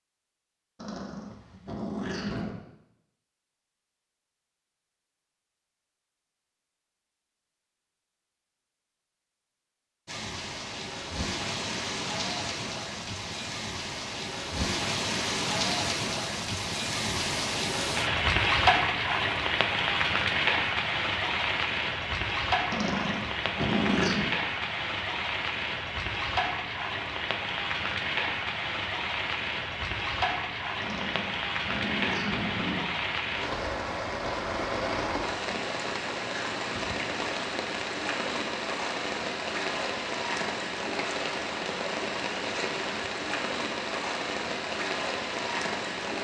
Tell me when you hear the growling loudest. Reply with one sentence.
The loudest moment of the growling is at 24 seconds.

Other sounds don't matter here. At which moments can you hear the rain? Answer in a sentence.
The rain can be heard from 10.1 to 46.1 s.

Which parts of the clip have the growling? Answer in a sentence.
The growling can be heard from 0.8 to 2.6 s, from 22.7 to 24.4 s and from 30.8 to 32.8 s.